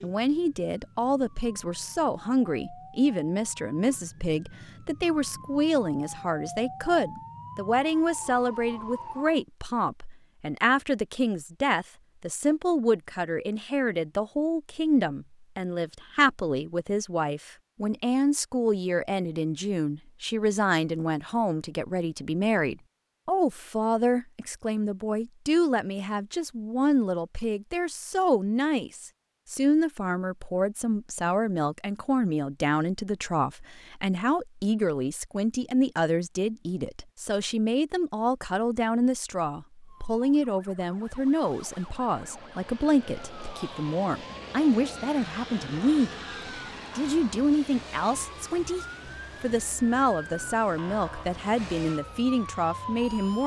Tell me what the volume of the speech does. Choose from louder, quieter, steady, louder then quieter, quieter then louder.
steady.